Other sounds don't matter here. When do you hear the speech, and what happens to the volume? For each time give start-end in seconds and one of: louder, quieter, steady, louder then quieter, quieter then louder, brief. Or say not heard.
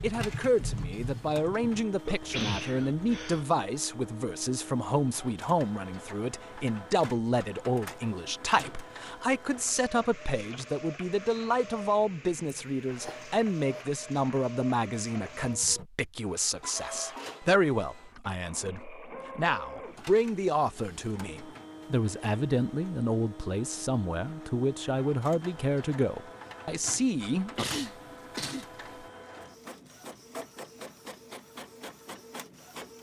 0.0-27.6 steady.